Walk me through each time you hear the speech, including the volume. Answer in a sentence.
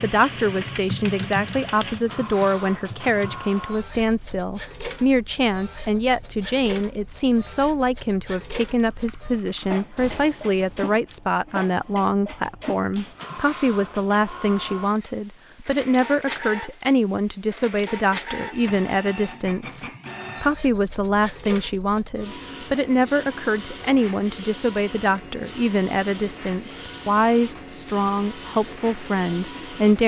The speech can be heard from 0.0 to 30.0 s, at a steady volume.